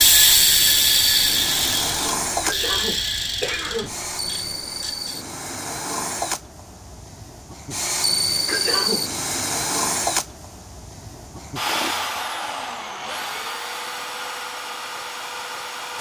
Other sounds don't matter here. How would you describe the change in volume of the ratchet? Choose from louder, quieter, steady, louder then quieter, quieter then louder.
quieter.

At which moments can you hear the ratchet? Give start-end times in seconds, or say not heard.
0.0-5.2.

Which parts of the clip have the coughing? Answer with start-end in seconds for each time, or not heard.
2.4-4.0, 8.4-9.1.